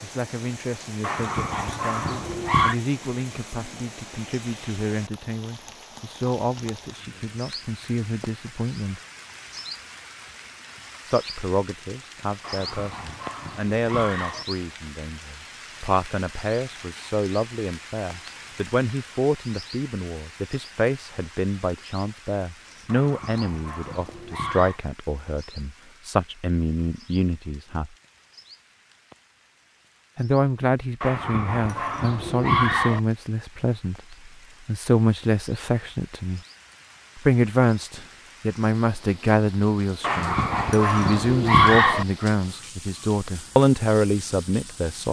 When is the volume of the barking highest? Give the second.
42 s.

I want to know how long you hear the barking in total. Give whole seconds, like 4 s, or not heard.
10 s.